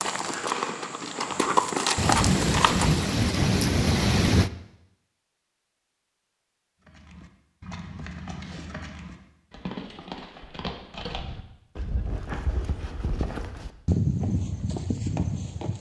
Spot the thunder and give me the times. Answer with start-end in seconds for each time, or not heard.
1.9-4.5.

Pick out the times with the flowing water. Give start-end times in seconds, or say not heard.
not heard.